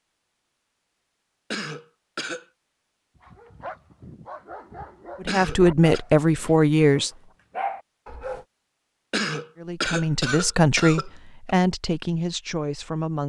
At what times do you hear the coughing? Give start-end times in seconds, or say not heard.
1.5-2.5, 5.2-6.0, 9.1-11.6.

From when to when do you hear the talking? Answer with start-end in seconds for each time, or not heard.
5.2-7.1, 9.6-13.2.